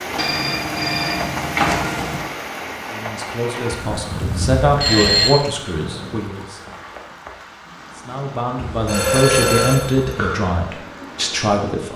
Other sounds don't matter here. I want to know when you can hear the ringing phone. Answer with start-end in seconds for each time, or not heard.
0.1-2.2, 4.1-5.3, 8.6-10.5.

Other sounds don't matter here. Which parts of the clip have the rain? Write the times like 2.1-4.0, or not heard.
0.0-11.9.